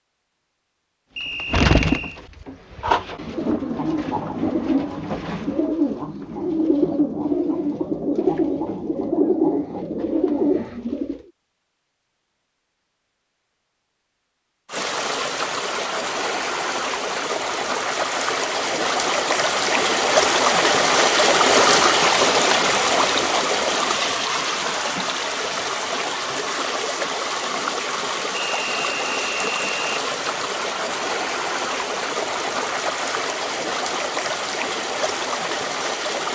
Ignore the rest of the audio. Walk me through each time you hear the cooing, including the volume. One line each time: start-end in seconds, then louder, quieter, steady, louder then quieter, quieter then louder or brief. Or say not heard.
1.2-11.2 steady.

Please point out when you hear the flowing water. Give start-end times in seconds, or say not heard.
14.7-36.3.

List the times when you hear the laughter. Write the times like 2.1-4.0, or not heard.
not heard.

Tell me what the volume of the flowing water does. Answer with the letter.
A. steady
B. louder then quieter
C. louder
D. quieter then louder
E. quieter
B.